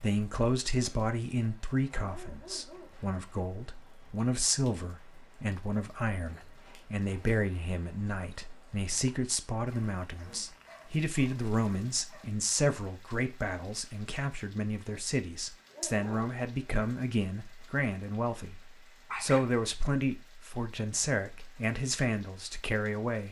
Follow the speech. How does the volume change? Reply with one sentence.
The volume of the speech stays about the same.